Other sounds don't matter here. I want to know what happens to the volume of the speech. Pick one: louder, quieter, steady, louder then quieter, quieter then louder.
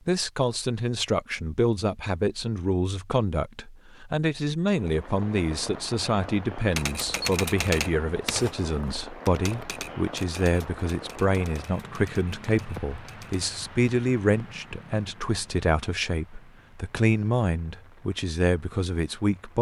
steady.